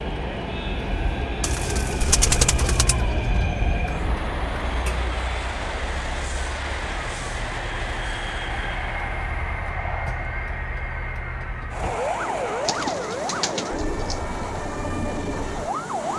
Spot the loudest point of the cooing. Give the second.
2 s.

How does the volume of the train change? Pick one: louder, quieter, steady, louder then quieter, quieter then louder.
steady.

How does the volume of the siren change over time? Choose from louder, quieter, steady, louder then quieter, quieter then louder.
quieter then louder.